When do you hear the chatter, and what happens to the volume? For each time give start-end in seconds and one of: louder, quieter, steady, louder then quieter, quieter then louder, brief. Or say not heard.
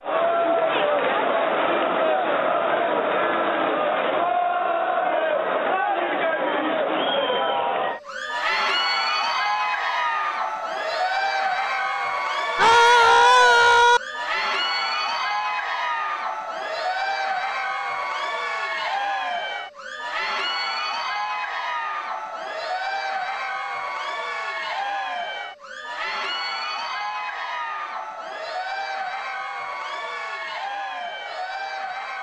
0.0-32.1 quieter.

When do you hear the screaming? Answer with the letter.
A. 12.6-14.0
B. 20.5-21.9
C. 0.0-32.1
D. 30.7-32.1
A.